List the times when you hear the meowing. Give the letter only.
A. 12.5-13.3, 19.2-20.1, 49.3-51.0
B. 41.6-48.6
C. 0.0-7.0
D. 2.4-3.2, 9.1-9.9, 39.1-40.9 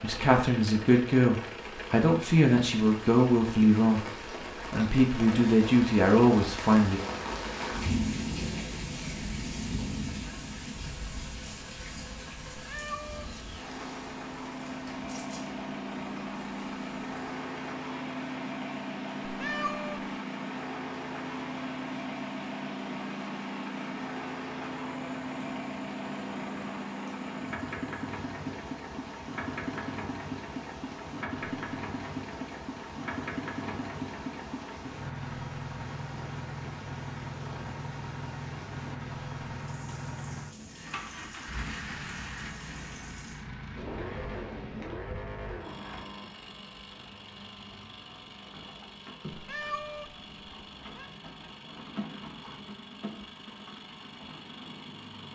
A.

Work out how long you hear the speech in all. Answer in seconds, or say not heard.
7 s.